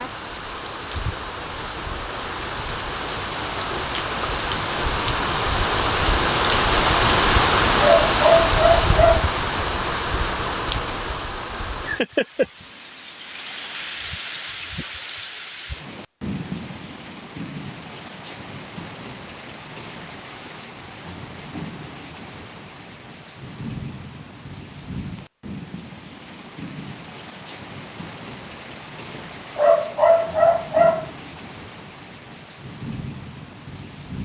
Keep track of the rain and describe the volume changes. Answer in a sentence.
The loudness of the rain goes down.